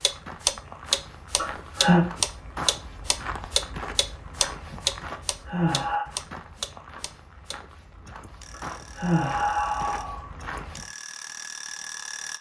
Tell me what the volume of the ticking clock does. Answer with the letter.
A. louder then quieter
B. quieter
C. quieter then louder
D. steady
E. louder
C.